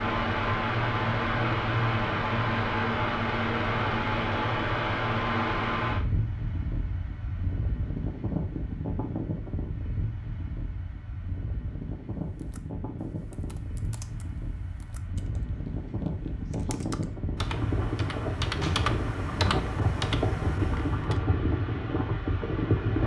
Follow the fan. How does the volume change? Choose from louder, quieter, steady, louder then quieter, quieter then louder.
quieter then louder.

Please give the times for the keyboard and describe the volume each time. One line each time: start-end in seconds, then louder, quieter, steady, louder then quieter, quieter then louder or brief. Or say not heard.
12.3-21.2 louder.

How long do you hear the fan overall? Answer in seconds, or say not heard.
23 s.